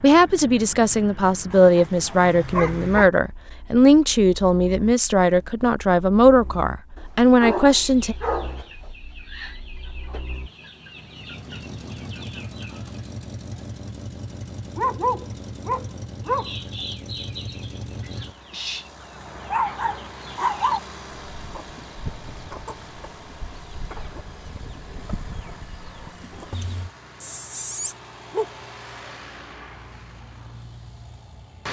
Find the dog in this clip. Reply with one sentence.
You can hear the dog from 1.5 to 3.1 s, from 7.0 to 8.7 s, from 14.8 to 16.5 s, from 19.5 to 20.8 s and from 27.2 to 28.5 s.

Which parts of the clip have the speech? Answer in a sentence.
You can hear the speech from 0.0 to 8.2 s.